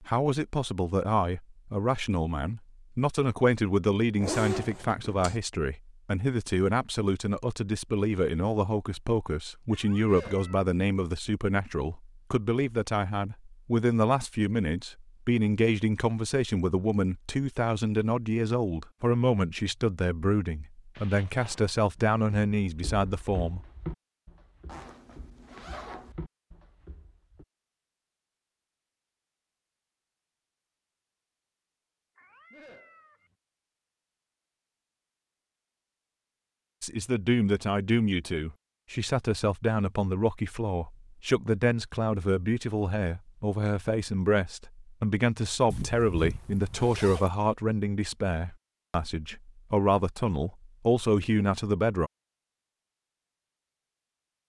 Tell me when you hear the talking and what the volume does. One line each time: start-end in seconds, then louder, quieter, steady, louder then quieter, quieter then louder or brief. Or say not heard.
0.0-23.6 steady
36.8-52.1 steady.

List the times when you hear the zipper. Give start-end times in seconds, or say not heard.
4.2-5.4, 24.6-26.1, 45.7-47.3.